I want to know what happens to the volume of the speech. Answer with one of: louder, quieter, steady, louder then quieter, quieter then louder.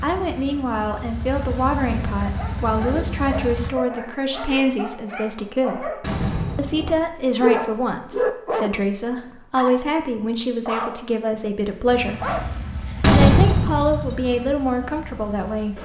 steady.